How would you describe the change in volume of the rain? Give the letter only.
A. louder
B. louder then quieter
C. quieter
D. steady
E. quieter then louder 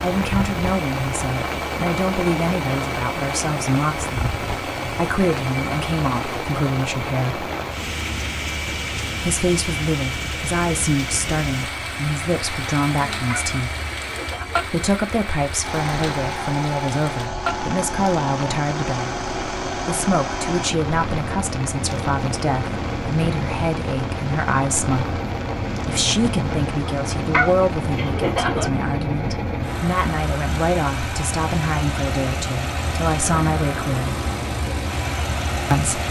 C.